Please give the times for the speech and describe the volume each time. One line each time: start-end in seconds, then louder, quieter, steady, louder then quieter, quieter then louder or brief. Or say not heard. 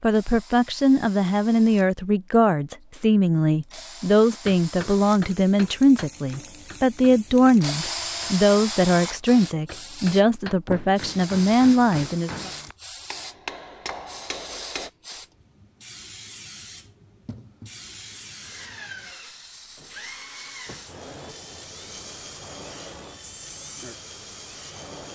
0.0-12.5 steady.